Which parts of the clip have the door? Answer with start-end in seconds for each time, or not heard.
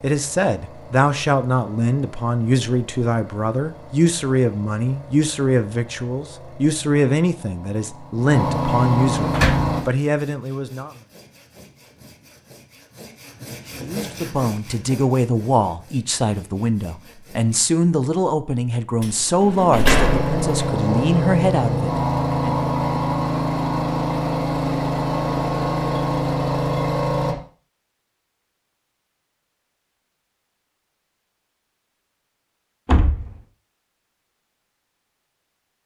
9.3-9.8, 19.0-20.5, 32.9-33.4.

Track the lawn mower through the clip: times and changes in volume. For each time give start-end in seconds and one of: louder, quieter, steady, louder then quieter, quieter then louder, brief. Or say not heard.
0.0-9.8 louder
19.9-27.4 steady.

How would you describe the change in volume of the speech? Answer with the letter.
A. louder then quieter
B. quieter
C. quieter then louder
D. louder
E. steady
E.